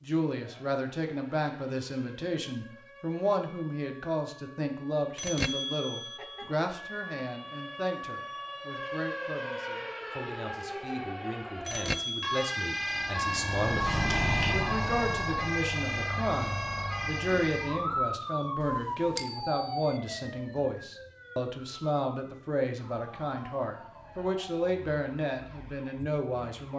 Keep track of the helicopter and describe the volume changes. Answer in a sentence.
The volume of the helicopter goes up, then down.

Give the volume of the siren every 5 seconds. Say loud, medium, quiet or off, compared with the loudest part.
quiet, medium, loud, loud, quiet, quiet.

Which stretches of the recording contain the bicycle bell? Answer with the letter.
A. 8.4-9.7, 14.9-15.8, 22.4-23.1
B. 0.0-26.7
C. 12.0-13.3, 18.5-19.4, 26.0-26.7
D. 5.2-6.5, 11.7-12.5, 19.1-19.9
D.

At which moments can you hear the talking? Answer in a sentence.
You can hear the talking from 0.0 to 26.7 s.